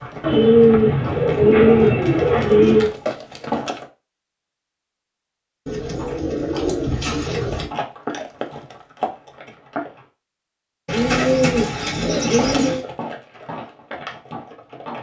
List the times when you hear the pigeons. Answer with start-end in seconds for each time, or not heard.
0.2-2.9, 5.7-7.7, 10.8-12.8.